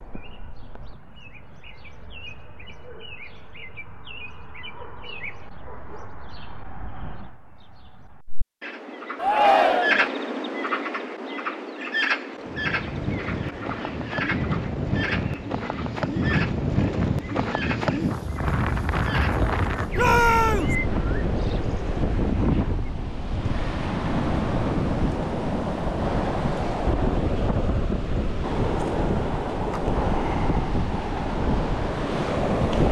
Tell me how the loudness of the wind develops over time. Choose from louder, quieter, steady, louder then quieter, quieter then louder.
steady.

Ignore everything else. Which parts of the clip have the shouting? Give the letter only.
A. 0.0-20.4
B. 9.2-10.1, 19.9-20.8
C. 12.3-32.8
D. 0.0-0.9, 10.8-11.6
B.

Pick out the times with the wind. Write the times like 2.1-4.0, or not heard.
12.3-32.8.